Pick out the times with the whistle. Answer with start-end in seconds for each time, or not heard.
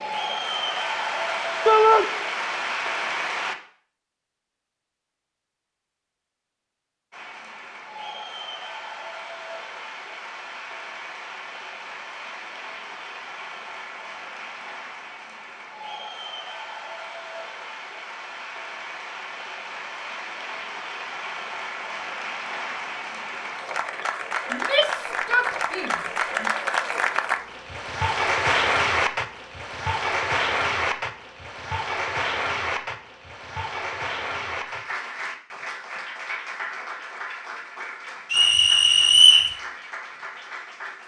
38.3-39.5.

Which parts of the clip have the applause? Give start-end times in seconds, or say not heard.
0.0-3.5, 7.1-41.0.